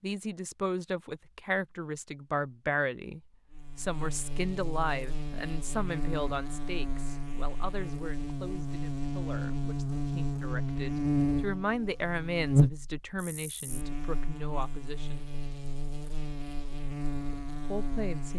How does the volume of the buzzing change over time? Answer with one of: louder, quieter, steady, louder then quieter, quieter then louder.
louder then quieter.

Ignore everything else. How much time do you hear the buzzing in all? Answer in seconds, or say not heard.
15 s.